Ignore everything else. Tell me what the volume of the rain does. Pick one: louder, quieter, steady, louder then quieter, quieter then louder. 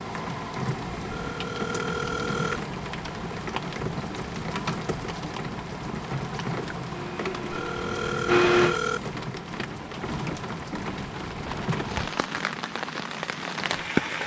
steady.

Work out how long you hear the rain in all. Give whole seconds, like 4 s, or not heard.
14 s.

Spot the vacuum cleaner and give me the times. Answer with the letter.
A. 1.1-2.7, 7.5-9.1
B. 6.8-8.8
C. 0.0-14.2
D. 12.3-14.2
B.